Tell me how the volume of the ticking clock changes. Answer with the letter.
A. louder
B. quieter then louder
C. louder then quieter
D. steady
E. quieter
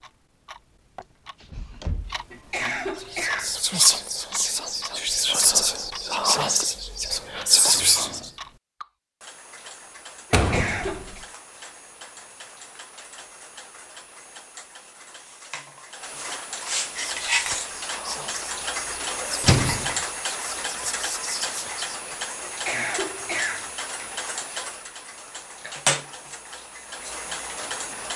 A.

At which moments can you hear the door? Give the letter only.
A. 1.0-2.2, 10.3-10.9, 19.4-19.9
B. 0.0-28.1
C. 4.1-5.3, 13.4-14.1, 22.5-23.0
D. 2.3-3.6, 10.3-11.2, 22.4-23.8
A.